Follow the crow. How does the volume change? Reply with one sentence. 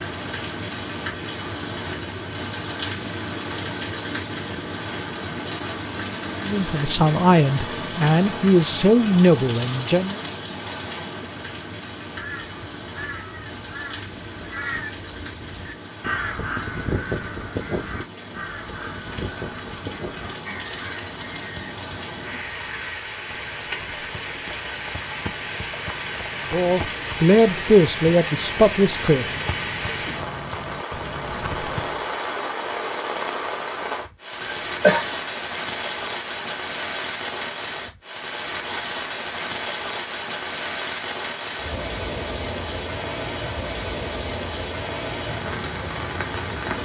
The loudness of the crow goes up, then down.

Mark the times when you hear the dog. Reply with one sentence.
You can't hear the dog here.